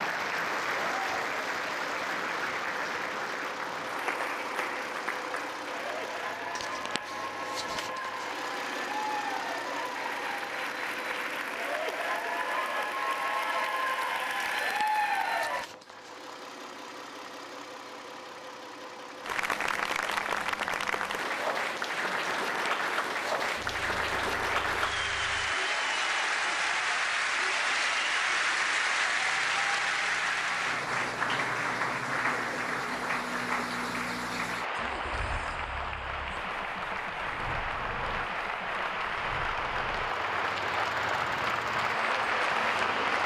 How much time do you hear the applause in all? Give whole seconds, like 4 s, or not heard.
40 s.